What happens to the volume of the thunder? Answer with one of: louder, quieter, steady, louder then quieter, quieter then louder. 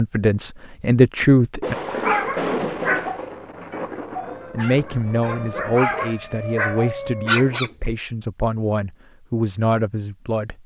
quieter.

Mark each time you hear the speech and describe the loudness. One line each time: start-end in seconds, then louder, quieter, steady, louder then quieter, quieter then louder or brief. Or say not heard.
0.0-1.8 brief
4.5-10.6 steady.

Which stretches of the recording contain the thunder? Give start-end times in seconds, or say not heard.
1.6-5.8.